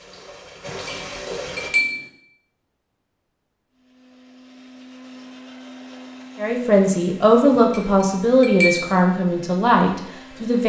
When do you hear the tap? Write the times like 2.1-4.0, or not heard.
0.0-1.7.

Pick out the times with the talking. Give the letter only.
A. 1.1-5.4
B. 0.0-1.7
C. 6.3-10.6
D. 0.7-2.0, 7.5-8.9
C.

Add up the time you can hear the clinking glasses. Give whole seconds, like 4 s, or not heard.
3 s.